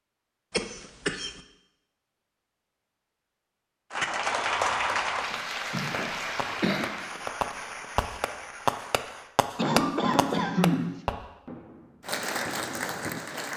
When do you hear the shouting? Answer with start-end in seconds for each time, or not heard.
not heard.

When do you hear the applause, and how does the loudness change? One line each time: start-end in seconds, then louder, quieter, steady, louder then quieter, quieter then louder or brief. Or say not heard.
3.9-9.3 quieter
12.0-13.5 brief.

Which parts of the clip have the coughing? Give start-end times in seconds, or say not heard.
0.5-1.3, 5.3-6.9, 9.6-10.9.